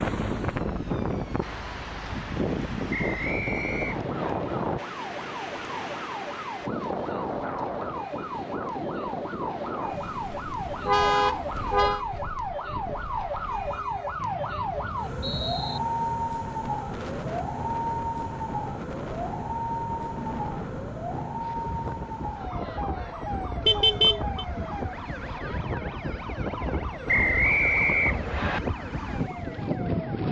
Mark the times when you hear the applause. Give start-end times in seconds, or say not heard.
not heard.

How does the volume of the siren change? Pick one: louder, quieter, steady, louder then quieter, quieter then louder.
louder then quieter.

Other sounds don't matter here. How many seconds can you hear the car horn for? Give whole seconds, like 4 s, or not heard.
2 s.